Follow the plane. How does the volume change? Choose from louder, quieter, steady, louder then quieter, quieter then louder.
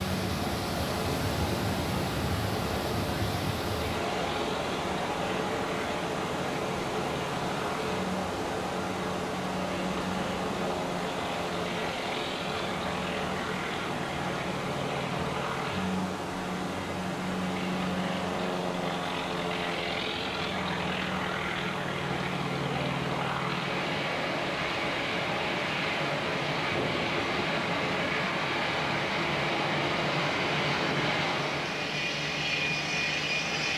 louder.